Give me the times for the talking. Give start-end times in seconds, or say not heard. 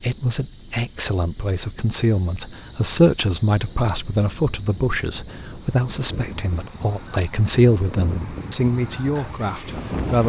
0.0-10.2.